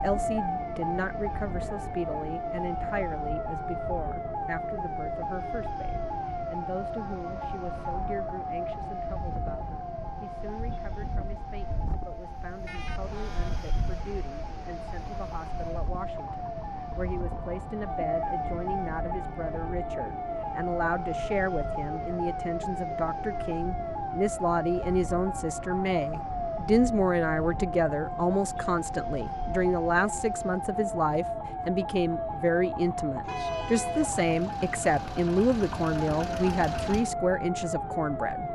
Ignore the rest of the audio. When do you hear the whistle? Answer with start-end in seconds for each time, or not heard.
not heard.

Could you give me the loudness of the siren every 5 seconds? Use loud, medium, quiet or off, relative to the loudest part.
loud, loud, medium, loud, loud, loud, loud, loud.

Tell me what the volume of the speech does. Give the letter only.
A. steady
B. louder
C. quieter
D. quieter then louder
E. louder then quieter
D.